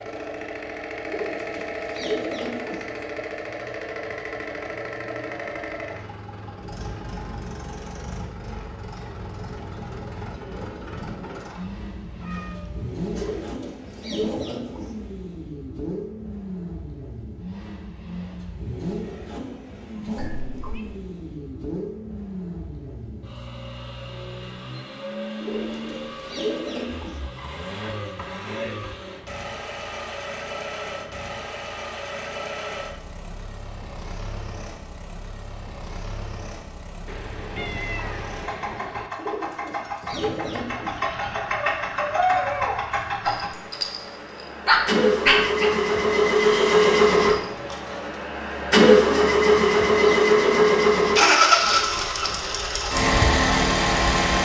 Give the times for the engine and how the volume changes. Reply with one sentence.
You can hear the engine from 0.0 to 54.3 s, getting louder.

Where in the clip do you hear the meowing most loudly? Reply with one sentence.
The loudest moment of the meowing is at 38 seconds.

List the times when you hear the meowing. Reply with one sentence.
The meowing can be heard from 11.8 to 13.6 s, from 20.1 to 20.9 s and from 37.0 to 39.1 s.